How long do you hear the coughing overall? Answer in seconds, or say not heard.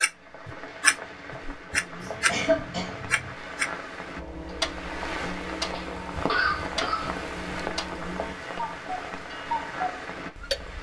3 s.